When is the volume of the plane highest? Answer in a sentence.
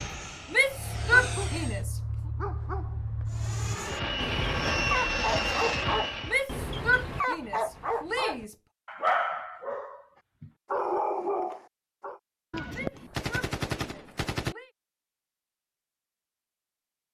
The loudest moment of the plane is at 5 seconds.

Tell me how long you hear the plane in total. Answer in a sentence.
The plane can be heard for 5 seconds in total.